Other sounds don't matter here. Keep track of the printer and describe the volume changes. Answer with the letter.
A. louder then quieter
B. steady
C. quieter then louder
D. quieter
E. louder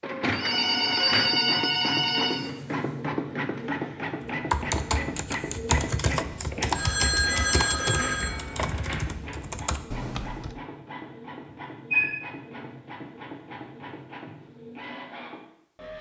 D.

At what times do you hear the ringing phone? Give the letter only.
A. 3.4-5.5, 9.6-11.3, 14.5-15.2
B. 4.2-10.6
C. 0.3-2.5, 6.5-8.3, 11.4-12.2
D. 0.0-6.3
C.